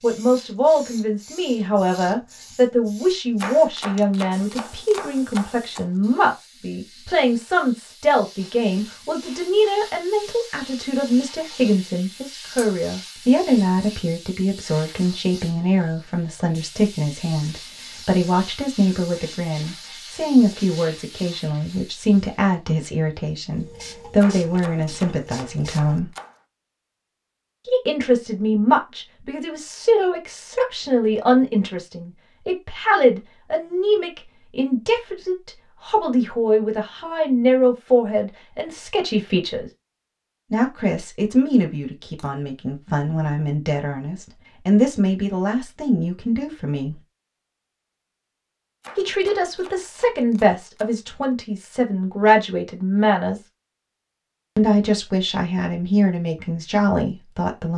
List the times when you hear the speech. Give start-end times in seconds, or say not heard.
0.0-26.1, 27.6-39.7, 40.5-47.0, 49.0-53.4, 54.5-57.7.